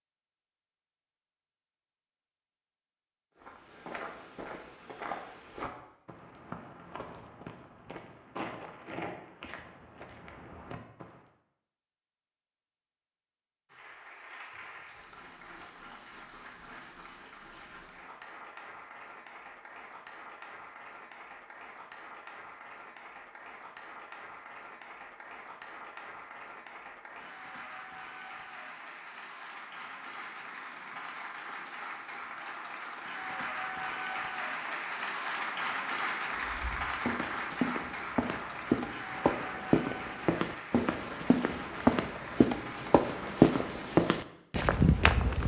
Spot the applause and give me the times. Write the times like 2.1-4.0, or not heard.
13.7-43.8.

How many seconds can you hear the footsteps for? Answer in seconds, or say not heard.
17 s.